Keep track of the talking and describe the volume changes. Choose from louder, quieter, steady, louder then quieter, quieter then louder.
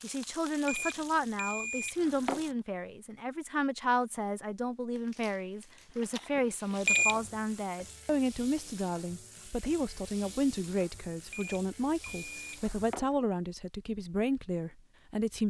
steady.